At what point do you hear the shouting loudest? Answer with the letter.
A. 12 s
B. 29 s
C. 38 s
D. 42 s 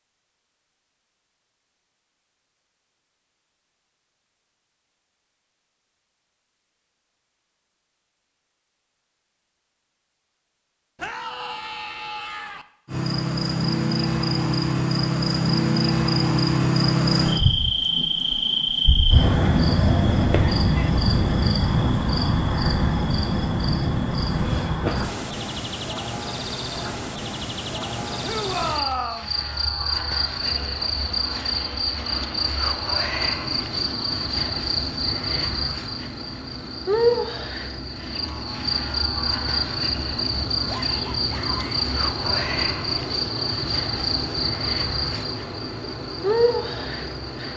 B.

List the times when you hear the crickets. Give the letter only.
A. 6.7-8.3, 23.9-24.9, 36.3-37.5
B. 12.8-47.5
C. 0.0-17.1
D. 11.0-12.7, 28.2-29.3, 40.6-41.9
B.